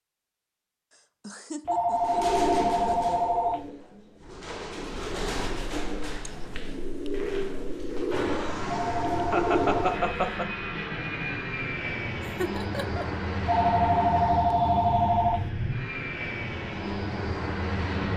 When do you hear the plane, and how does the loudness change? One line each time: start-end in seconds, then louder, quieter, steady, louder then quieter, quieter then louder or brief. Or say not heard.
8.1-18.1 steady.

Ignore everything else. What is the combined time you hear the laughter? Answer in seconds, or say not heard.
4 s.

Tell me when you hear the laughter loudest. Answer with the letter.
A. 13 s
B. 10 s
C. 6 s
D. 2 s
B.